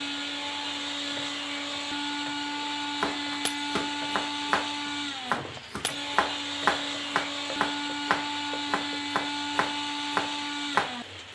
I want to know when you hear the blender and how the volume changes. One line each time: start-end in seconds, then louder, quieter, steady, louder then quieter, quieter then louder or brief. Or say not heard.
0.0-11.3 steady.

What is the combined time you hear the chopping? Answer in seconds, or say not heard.
8 s.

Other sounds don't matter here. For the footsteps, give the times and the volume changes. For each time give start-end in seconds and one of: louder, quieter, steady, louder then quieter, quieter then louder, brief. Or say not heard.
not heard.